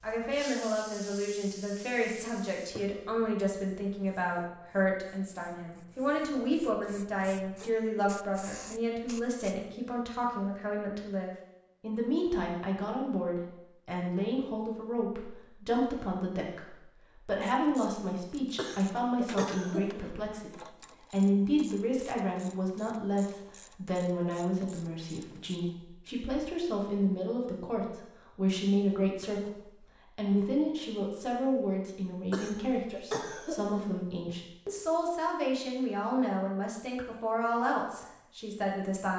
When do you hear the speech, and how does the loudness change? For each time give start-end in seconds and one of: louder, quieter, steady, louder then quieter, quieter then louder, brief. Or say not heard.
0.0-39.1 steady.